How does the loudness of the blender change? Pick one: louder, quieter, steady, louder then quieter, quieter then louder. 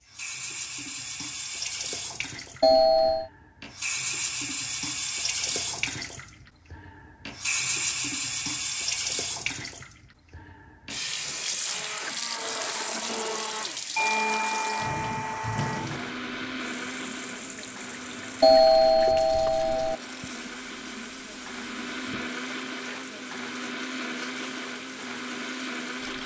quieter then louder.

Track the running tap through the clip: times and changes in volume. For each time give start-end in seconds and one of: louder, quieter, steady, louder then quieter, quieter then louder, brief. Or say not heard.
0.1-26.2 quieter.